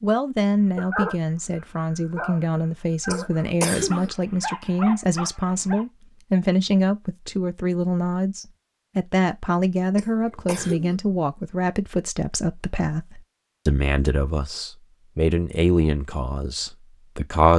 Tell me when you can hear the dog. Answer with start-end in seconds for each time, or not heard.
0.8-5.8.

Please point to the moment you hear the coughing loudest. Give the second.
4 s.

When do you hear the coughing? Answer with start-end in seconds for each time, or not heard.
3.0-4.1, 9.9-11.0.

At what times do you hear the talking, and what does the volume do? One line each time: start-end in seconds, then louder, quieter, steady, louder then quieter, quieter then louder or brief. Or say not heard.
0.0-17.5 steady.